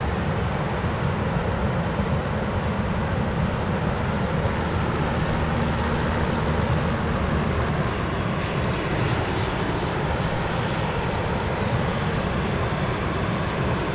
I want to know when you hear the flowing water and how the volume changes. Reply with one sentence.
The flowing water can be heard from 0.0 to 13.9 s, at a steady volume.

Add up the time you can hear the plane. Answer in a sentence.
You can hear the plane for 14 seconds altogether.